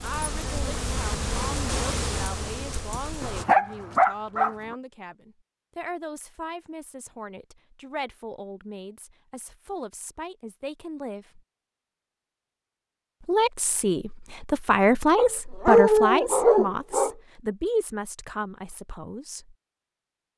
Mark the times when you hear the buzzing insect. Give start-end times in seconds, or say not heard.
0.0-3.5.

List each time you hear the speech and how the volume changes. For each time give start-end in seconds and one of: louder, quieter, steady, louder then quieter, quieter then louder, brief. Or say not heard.
0.0-11.4 steady
13.2-19.6 louder then quieter.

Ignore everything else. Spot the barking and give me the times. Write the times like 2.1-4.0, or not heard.
3.2-4.8, 15.2-17.1.